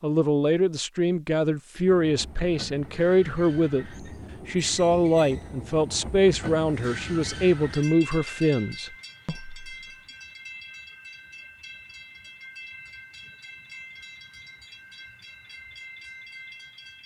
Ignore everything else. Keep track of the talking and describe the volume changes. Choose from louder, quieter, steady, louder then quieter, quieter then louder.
steady.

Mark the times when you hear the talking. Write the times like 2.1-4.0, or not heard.
0.0-9.6.